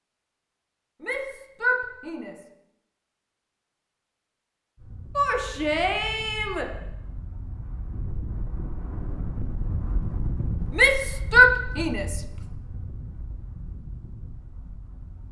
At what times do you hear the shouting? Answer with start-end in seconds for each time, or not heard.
1.0-2.4, 5.2-6.7, 10.8-12.2.